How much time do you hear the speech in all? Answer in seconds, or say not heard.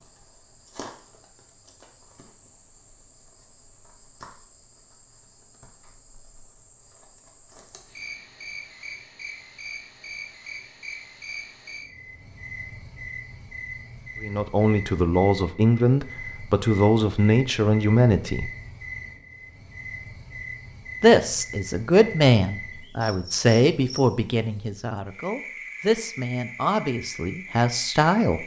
12 s.